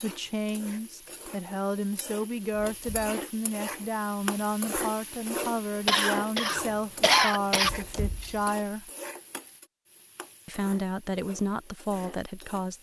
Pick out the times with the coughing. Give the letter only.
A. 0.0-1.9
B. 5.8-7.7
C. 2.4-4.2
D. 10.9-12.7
B.